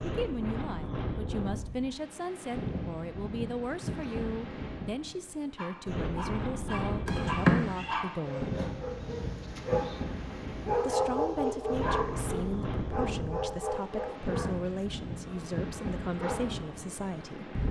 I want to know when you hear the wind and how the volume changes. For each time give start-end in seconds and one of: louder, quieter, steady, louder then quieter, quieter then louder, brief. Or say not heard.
0.0-17.6 steady.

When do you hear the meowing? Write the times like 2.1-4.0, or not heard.
7.0-8.0.